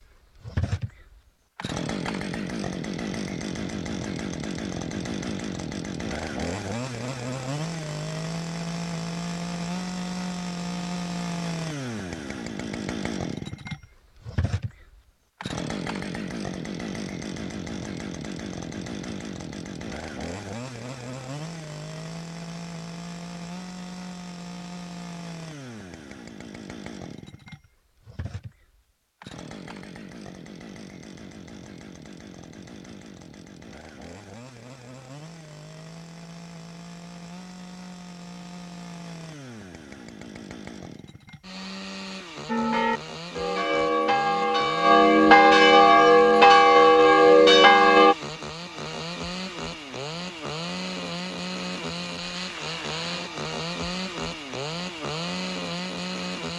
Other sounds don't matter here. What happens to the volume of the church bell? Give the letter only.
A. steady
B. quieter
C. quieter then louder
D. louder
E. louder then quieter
D.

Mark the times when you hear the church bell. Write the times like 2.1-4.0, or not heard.
42.5-48.1.